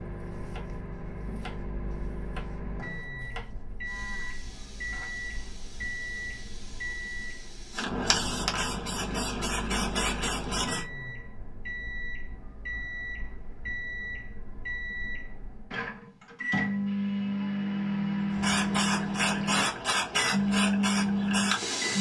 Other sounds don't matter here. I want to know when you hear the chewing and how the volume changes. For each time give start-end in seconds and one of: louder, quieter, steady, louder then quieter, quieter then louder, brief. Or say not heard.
not heard.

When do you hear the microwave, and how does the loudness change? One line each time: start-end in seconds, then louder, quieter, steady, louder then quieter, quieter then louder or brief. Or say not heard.
0.0-21.9 louder.